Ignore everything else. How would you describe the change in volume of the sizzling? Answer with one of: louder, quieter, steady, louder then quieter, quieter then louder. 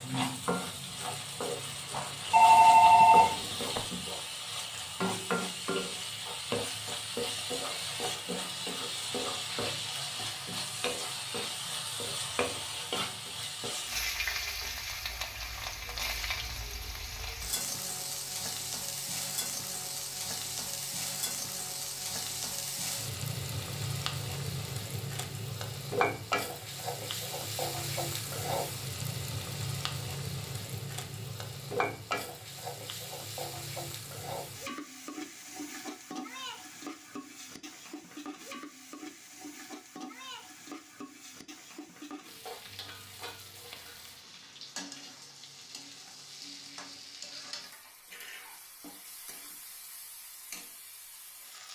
quieter.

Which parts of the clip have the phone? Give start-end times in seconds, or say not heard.
2.3-3.9.